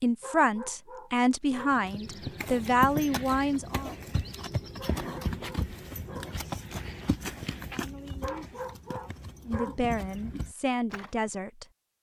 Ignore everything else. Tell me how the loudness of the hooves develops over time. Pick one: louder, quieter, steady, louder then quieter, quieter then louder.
quieter.